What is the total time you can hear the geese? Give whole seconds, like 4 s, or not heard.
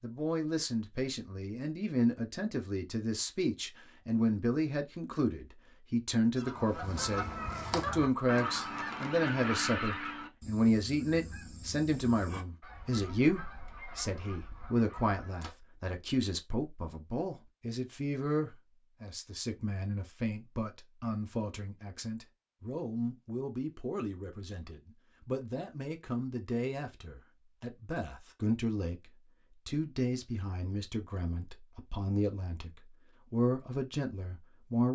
9 s.